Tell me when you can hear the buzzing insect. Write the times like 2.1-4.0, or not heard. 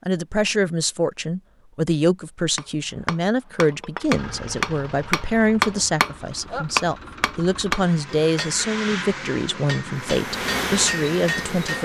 9.9-11.8.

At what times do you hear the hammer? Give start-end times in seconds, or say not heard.
2.5-11.8.